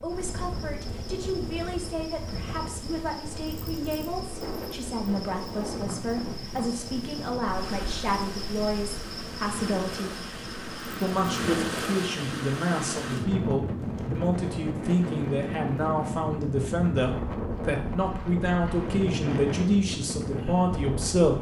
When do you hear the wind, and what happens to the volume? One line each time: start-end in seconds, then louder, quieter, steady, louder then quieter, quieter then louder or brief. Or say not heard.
0.0-21.3 louder.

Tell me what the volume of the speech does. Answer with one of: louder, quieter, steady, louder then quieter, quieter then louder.
louder.